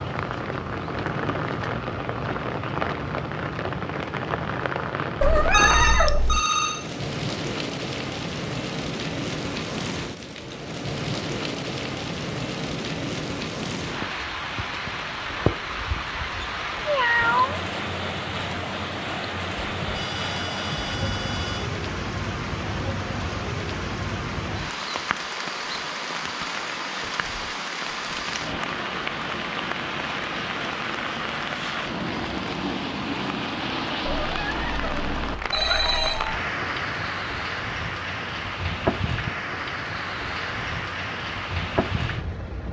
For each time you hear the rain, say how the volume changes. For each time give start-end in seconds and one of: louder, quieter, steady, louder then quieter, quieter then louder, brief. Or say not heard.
0.0-42.6 steady.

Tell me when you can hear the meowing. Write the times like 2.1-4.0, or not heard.
5.2-6.4, 16.4-17.6, 34.0-36.4.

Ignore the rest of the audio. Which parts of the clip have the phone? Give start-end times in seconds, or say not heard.
5.5-6.8, 19.8-21.7, 35.5-36.4.